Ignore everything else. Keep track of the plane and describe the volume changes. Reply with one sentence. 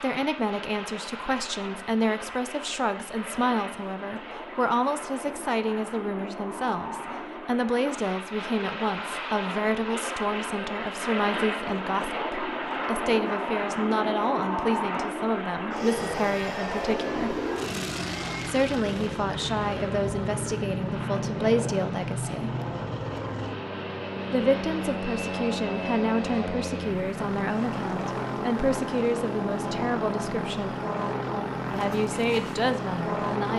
The volume of the plane goes up.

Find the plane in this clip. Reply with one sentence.
You can hear the plane from 0.0 to 33.5 s.